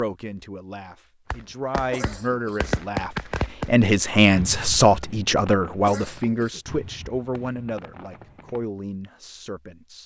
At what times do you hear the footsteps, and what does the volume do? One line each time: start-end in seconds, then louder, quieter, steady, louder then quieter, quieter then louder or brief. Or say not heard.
not heard.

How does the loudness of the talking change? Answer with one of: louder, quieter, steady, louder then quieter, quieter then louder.
louder then quieter.